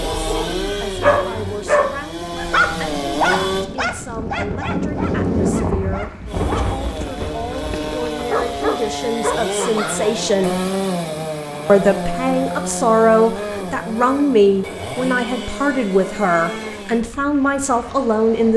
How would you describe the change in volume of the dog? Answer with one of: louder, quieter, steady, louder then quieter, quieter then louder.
quieter then louder.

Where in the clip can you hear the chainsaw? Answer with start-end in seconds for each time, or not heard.
0.0-3.6, 6.2-17.1.